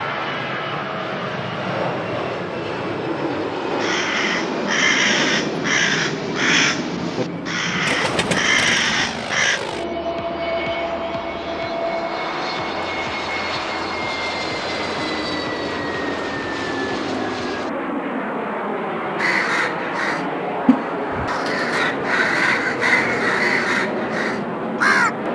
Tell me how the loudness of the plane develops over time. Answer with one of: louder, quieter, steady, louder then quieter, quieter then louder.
steady.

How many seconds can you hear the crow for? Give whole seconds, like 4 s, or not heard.
12 s.